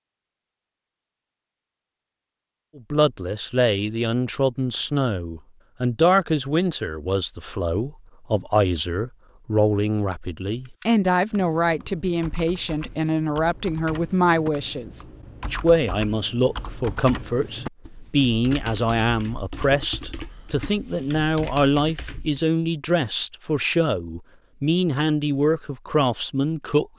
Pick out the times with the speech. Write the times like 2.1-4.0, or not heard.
2.8-26.9.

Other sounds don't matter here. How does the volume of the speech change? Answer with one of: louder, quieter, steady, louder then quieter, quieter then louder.
steady.